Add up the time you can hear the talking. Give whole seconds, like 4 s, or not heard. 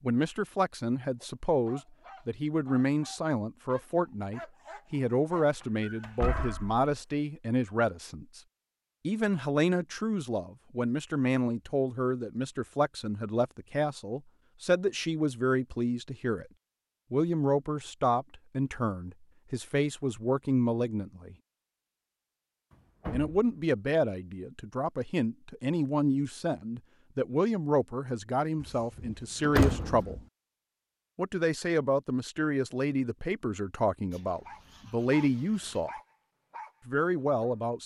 33 s.